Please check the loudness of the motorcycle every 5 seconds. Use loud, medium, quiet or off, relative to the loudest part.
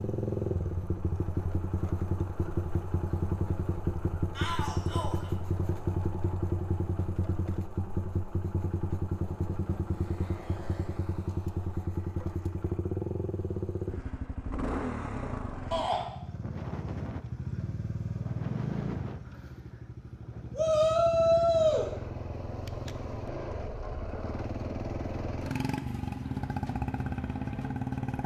loud, loud, loud, loud, medium, loud.